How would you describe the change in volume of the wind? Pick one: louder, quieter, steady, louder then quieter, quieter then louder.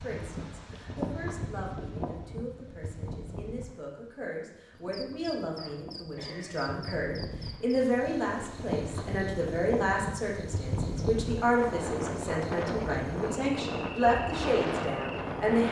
quieter then louder.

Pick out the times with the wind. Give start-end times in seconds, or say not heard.
0.0-15.6.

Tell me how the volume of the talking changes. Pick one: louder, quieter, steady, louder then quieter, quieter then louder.
louder.